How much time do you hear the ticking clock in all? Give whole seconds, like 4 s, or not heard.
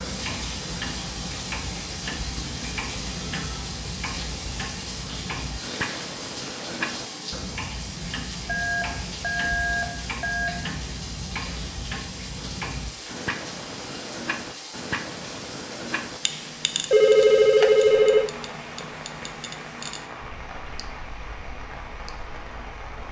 23 s.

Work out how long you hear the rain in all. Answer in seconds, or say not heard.
23 s.